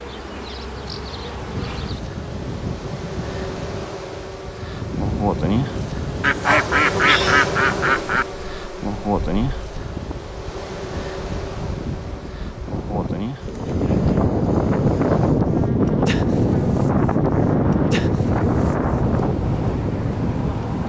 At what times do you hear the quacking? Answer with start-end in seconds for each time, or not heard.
6.2-8.2.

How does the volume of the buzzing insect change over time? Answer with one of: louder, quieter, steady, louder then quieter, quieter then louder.
louder then quieter.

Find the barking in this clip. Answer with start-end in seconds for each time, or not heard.
6.4-7.5.